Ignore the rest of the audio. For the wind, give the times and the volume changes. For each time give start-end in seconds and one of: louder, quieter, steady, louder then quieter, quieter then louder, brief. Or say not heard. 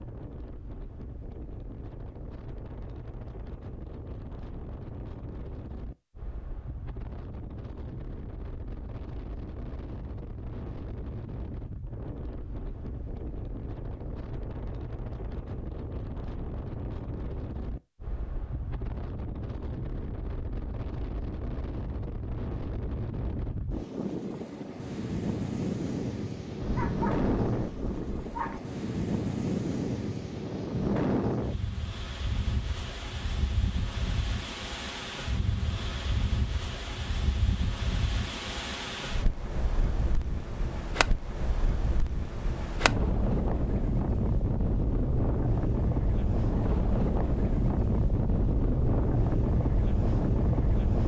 0.0-51.0 louder.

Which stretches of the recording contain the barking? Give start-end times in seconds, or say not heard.
26.6-28.6.